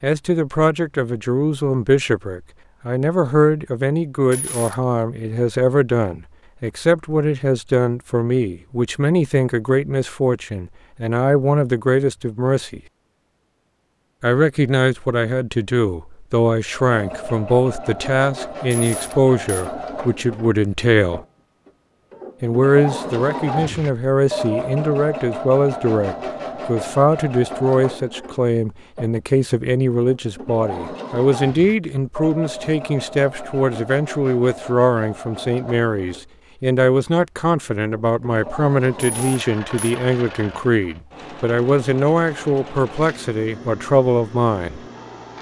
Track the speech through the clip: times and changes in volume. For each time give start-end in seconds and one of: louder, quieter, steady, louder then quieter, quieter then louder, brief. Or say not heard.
0.0-12.8 steady
14.2-21.2 steady
22.4-44.8 steady.